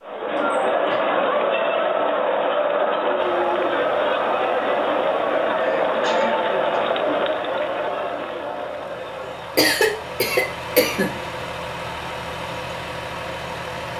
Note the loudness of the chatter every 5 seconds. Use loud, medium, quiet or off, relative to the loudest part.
loud, loud, quiet.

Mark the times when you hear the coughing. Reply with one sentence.
The coughing can be heard from 0.3 to 1.0 s, from 5.7 to 6.8 s and from 9.6 to 11.1 s.